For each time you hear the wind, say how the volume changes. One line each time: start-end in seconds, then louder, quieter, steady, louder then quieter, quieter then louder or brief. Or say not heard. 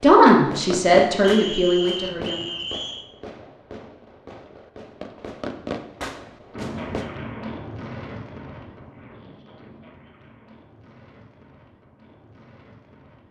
6.5-13.2 quieter.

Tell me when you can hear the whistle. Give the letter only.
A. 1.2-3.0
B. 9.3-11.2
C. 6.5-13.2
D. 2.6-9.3
A.